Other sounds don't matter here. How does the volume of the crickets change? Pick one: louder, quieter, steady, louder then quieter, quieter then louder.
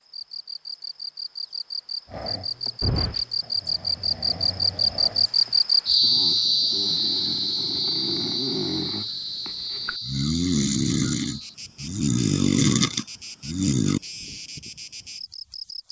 louder then quieter.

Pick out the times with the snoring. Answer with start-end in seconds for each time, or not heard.
2.0-14.0.